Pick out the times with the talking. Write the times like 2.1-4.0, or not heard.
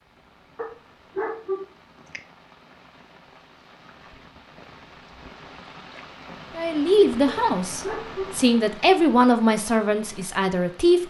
6.5-11.0.